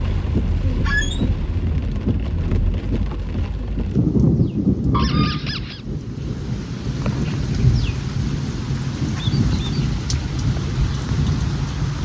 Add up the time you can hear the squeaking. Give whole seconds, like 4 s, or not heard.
2 s.